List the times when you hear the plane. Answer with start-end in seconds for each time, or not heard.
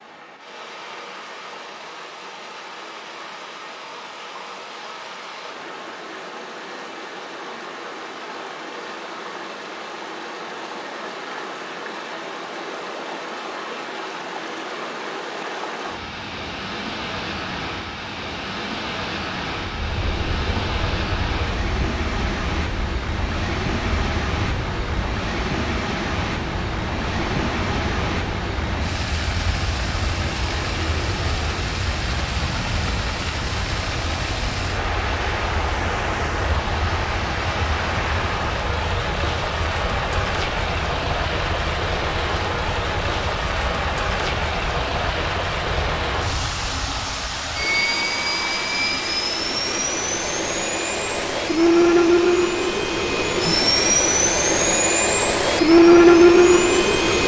19.6-57.2.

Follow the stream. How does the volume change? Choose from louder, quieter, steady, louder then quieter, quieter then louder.
louder.